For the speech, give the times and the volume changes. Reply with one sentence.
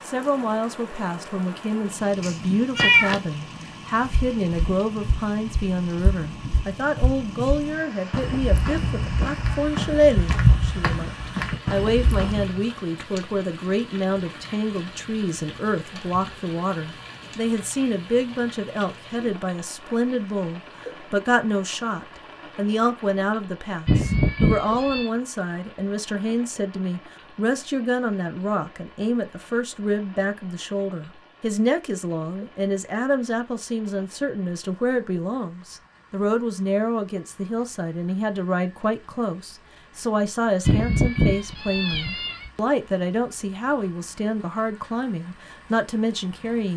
You can hear the speech from 0.1 to 46.7 s, at a steady volume.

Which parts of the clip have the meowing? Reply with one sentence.
You can hear the meowing from 2.2 to 3.2 s, from 23.9 to 25.1 s and from 40.6 to 42.5 s.